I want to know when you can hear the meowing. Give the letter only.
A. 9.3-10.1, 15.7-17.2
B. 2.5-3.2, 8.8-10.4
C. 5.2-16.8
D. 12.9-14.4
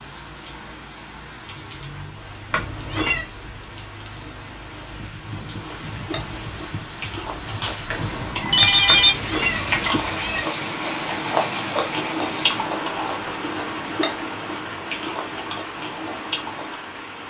B.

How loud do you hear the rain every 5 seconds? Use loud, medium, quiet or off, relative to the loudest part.
medium, loud, loud, loud.